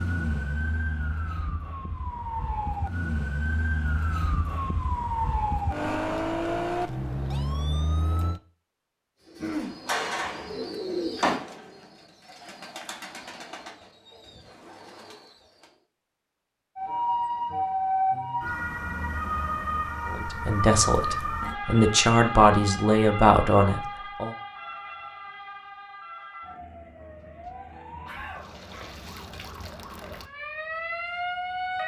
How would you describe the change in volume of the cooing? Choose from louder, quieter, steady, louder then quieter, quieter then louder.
quieter.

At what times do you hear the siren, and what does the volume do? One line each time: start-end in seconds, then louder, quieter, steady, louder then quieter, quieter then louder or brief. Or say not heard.
0.0-8.4 louder
16.8-31.8 quieter then louder.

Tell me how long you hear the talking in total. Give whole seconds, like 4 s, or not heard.
4 s.